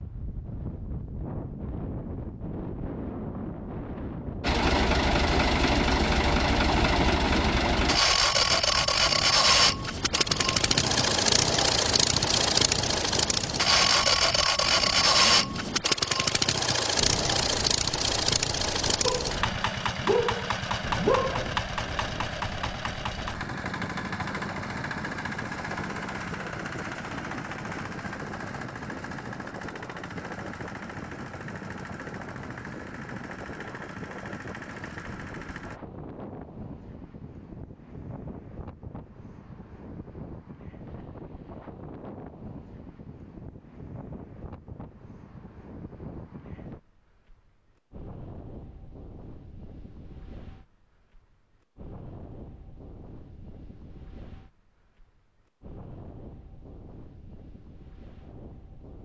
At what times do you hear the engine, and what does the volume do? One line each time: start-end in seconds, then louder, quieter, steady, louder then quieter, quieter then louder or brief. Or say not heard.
4.4-35.8 quieter.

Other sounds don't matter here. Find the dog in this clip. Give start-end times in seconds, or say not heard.
19.1-21.6.